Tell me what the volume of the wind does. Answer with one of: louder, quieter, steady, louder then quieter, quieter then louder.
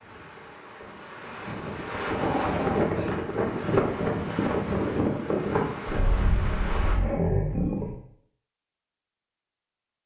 louder.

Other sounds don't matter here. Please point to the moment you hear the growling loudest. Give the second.
7 s.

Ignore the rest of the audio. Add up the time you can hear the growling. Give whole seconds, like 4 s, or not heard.
2 s.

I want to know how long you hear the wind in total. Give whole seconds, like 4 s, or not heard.
7 s.